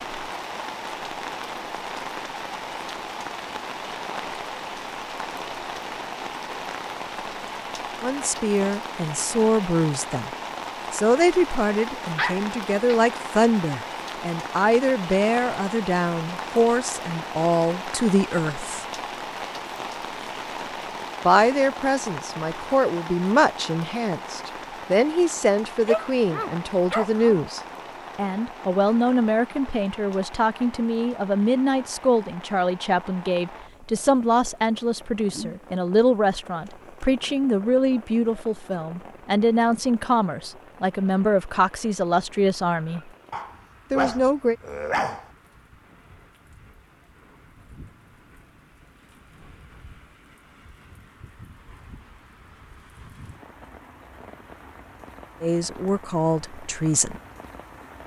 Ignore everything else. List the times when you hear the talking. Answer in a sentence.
You can hear the talking from 8.0 to 10.3 s, from 10.9 to 18.9 s, from 21.2 to 43.0 s, from 43.9 to 44.5 s and from 55.4 to 57.1 s.